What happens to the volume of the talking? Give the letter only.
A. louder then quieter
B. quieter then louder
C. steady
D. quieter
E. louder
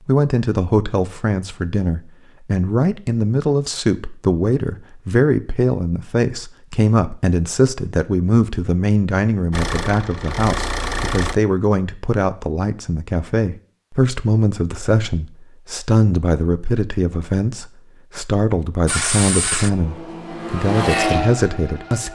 C.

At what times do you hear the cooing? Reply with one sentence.
The cooing can't be heard in this clip.